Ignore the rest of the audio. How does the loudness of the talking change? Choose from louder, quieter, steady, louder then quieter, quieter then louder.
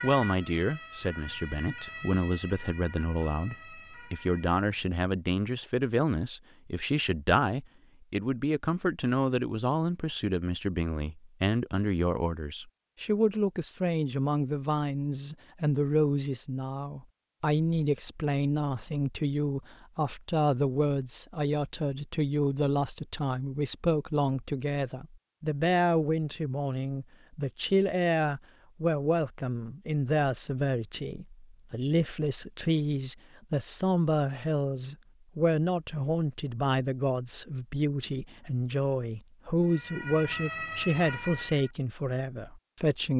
steady.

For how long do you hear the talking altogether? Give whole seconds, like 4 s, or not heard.
43 s.